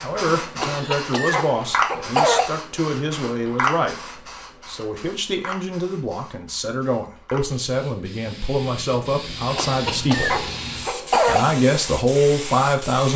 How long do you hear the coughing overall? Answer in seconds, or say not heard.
4 s.